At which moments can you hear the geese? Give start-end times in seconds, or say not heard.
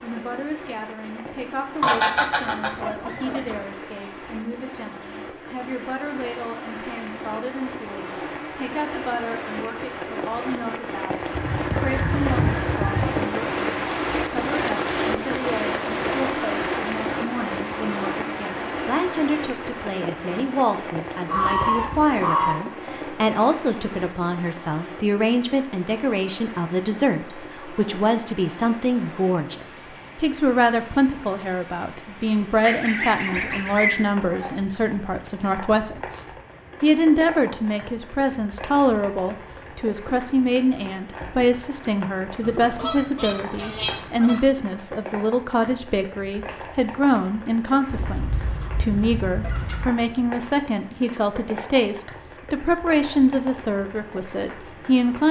1.8-3.6, 11.3-13.2, 21.2-22.6, 32.6-34.5, 42.4-44.4, 47.9-49.9.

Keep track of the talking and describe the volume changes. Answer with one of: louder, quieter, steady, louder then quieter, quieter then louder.
louder.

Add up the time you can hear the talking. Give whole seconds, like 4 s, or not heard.
55 s.